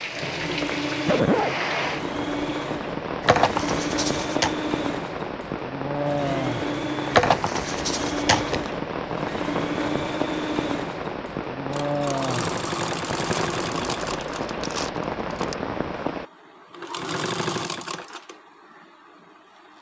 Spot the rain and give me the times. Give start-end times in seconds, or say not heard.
0.0-16.2.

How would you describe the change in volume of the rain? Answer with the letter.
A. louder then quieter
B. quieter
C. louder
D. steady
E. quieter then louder
D.